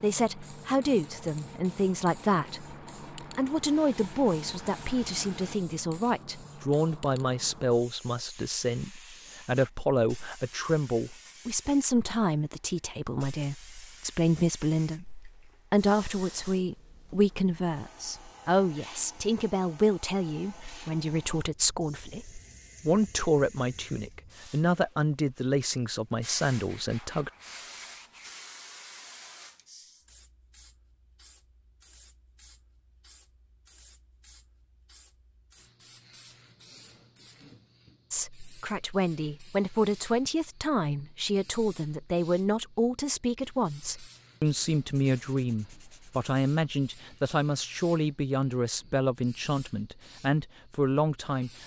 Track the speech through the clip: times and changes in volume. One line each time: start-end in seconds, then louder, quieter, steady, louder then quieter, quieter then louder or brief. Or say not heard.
0.0-27.3 steady
38.1-51.6 steady.